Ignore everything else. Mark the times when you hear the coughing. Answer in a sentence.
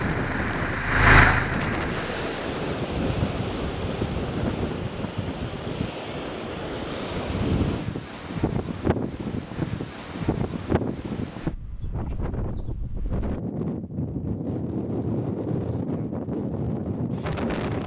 The coughing can't be heard in this clip.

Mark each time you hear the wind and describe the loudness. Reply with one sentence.
The wind can be heard from 0.0 to 17.8 s, at a steady volume.